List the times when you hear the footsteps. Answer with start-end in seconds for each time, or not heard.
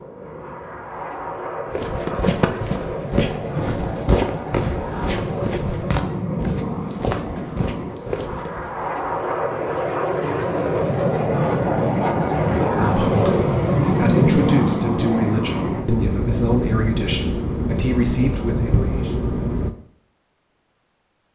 1.6-8.7.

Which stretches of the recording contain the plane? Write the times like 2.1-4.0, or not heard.
0.0-19.7.